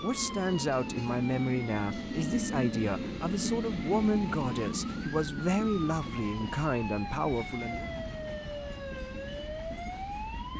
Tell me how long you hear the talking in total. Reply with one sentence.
The talking can be heard for 8 seconds in total.